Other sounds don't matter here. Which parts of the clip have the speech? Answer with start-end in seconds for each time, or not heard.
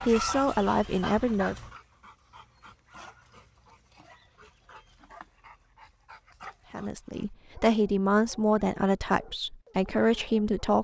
0.0-1.6, 6.7-10.7.